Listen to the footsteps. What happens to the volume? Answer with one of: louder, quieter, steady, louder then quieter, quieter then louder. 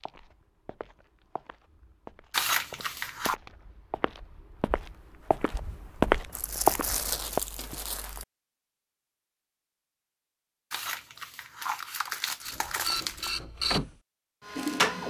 louder.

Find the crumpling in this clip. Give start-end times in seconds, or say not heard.
2.3-3.4, 6.3-8.2, 10.7-13.3.